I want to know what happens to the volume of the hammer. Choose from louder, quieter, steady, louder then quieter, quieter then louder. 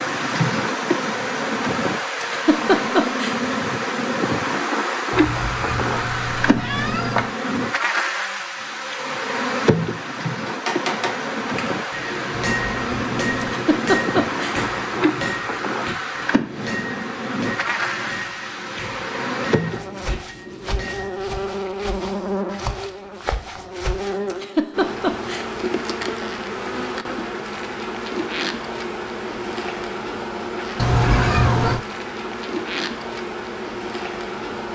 quieter.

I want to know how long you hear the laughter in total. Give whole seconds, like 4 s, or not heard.
4 s.